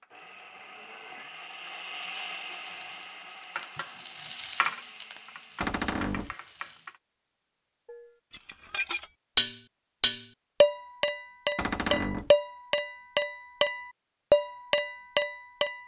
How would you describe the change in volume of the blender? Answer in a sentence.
The volume of the blender goes up, then down.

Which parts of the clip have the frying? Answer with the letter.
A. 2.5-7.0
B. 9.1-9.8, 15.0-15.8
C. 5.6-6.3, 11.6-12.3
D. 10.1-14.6
A.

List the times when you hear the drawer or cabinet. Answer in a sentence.
The drawer or cabinet can be heard from 5.6 to 6.3 s and from 11.6 to 12.3 s.